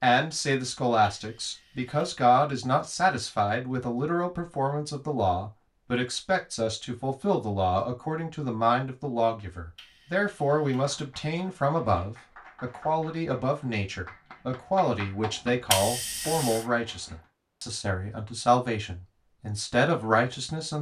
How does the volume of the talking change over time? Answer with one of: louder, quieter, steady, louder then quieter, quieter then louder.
steady.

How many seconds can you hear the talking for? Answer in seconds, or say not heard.
21 s.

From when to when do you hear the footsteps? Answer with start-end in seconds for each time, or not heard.
not heard.